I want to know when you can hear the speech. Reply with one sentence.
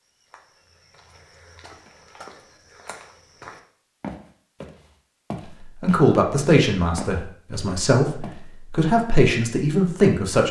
The speech can be heard from 5.8 to 10.4 s.